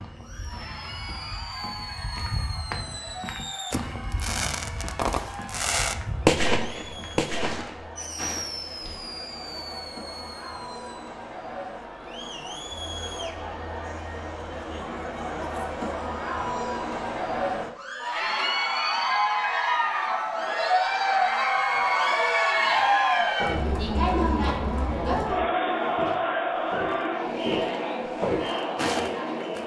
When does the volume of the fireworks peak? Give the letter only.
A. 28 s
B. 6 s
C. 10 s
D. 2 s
B.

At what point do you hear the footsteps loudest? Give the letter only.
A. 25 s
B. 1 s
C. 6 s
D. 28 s
D.